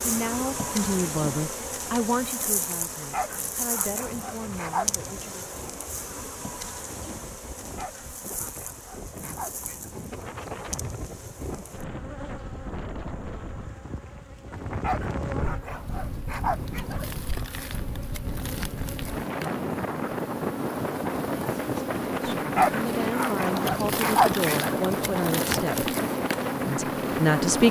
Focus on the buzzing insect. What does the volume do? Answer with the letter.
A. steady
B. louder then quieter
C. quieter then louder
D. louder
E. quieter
C.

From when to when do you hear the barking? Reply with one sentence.
The barking can be heard from 2.8 to 4.8 s, from 7.7 to 9.9 s, from 14.5 to 17.1 s and from 22.4 to 24.9 s.